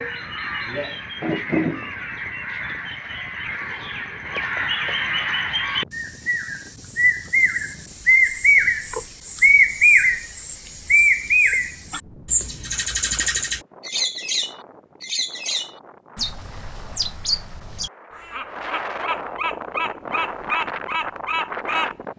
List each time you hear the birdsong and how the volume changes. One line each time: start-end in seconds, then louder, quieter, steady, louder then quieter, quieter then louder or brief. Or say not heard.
0.0-22.1 louder then quieter.